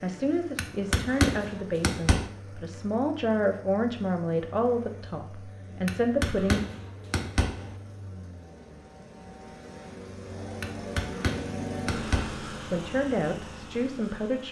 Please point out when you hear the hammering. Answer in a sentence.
You can hear the hammering from 0.6 to 2.3 s, from 5.8 to 7.8 s and from 10.6 to 12.4 s.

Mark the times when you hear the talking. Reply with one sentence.
You can hear the talking from 0.0 to 6.6 s and from 12.7 to 14.4 s.